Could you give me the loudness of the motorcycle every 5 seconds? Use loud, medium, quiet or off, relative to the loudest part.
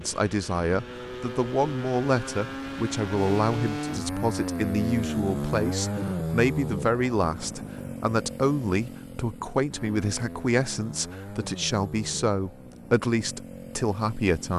loud, loud, medium.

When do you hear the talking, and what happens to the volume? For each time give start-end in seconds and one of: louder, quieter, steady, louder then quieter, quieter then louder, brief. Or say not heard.
0.0-14.5 steady.